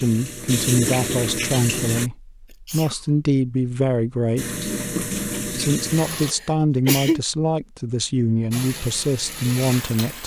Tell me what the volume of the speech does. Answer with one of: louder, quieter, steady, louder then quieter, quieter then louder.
steady.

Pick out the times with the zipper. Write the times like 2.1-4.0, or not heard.
not heard.